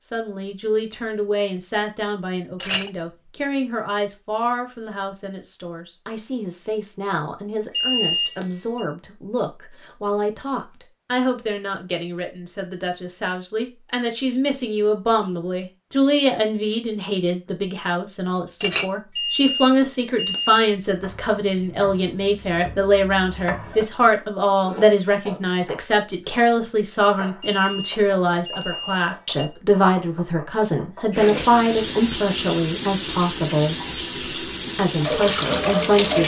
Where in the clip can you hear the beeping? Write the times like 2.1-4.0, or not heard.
7.7-8.8, 19.1-20.7, 27.4-29.4.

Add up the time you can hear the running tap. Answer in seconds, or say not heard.
5 s.